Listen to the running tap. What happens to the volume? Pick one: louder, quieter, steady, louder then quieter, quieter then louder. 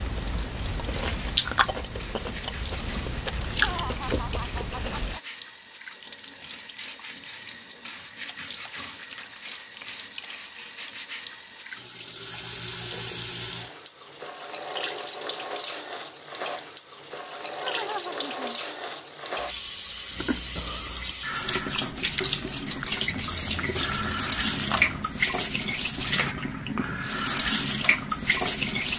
louder.